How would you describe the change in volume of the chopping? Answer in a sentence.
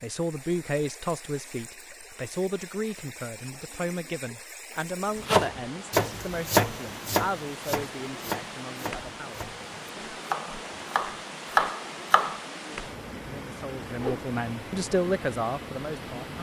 The volume of the chopping goes down, then up.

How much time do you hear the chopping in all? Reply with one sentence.
You can hear the chopping for 7 seconds altogether.